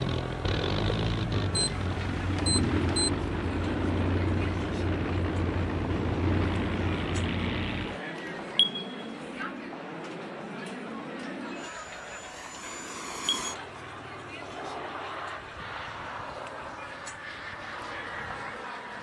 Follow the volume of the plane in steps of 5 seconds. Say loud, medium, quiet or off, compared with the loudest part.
loud, loud, medium, medium.